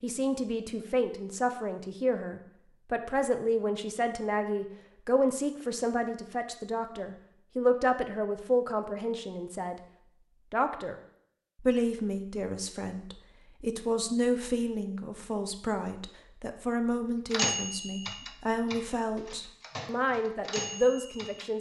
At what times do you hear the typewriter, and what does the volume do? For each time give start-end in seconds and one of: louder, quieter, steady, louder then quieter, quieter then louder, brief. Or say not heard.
17.3-21.4 quieter then louder.